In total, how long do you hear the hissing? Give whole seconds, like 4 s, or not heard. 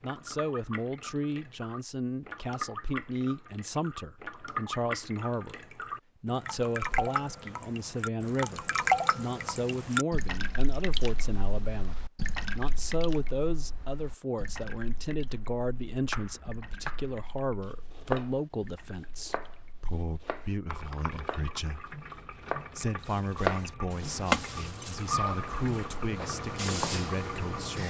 4 s.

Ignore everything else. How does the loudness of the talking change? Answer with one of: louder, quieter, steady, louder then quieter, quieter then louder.
steady.